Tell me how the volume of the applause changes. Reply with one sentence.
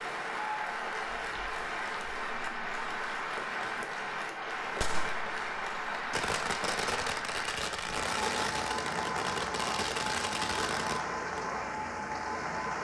The volume of the applause stays about the same.